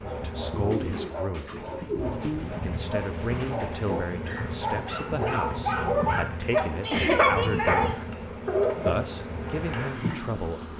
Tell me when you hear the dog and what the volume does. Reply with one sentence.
You can hear the dog from 0.0 to 8.9 s, getting louder.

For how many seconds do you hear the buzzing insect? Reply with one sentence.
The buzzing insect can be heard for 11 seconds in total.